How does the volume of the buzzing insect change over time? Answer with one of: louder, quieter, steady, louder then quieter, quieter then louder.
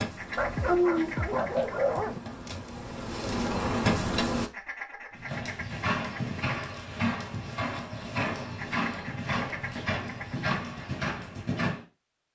louder.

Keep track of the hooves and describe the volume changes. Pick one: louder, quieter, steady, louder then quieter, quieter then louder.
steady.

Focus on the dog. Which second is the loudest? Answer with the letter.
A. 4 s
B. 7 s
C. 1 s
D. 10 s
C.